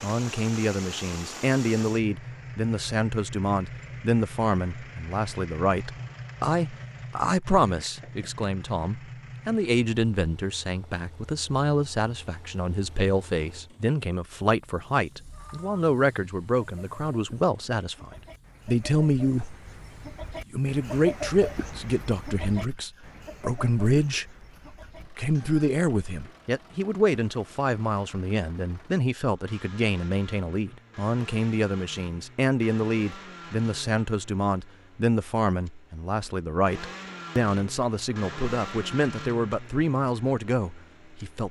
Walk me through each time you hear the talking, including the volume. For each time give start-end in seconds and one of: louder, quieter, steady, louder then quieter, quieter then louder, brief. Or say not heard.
0.0-19.6 steady
20.5-41.4 steady.